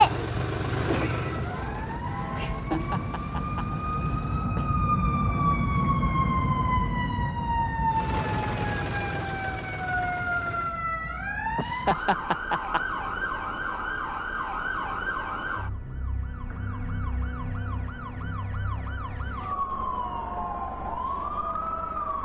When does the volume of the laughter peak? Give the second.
12 s.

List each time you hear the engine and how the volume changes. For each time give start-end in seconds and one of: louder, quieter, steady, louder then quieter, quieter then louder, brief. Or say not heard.
0.0-4.5 quieter
7.9-10.8 brief.